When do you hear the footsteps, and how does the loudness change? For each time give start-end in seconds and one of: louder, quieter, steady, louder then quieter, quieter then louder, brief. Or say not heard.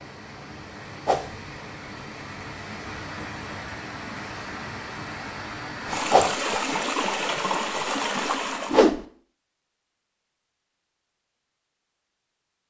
not heard.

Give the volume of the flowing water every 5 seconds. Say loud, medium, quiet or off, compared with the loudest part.
medium, loud, off.